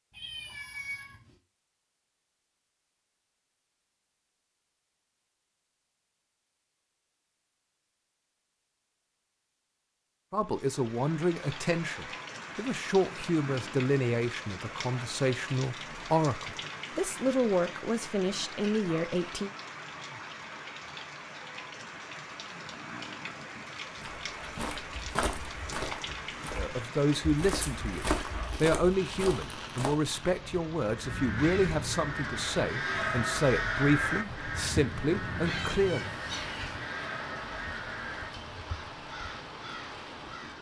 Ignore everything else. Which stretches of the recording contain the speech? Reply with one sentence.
The speech can be heard from 10.3 to 19.5 s and from 26.6 to 36.0 s.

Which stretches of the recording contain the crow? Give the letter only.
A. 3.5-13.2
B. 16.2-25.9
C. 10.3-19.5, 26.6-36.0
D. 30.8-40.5
D.